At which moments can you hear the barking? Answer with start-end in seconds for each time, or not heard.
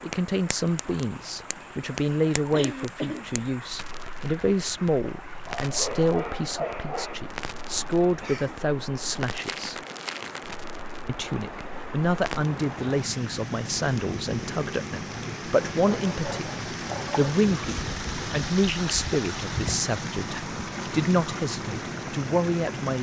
5.5-7.2, 15.7-17.4.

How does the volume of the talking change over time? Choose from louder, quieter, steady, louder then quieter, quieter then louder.
steady.